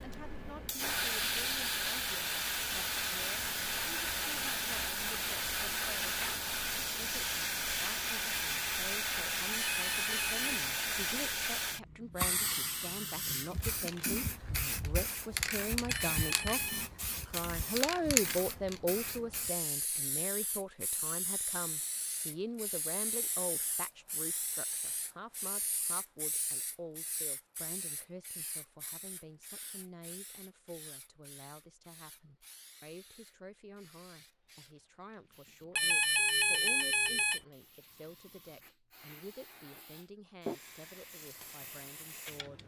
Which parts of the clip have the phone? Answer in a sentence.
You can hear the phone from 9.5 to 10.6 s, from 15.8 to 16.9 s and from 35.8 to 37.4 s.